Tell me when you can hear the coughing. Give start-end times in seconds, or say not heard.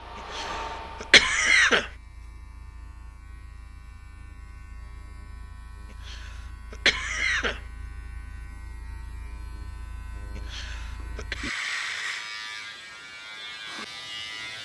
0.3-1.9, 6.0-7.6, 10.3-11.3.